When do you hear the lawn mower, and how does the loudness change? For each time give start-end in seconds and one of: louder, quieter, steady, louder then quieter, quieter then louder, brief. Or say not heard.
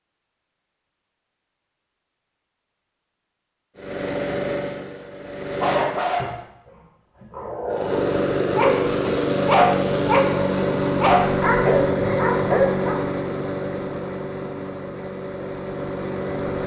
3.8-6.0 brief
7.7-16.6 quieter.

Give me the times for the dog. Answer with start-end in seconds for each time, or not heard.
5.6-13.1.